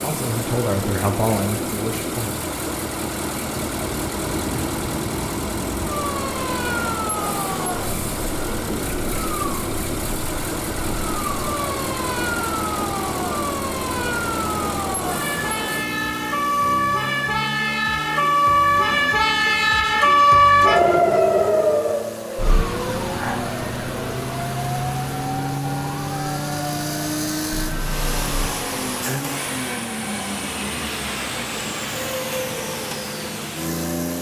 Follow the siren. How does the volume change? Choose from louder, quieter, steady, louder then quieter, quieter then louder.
louder then quieter.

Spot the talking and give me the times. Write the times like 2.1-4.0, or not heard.
0.0-2.4.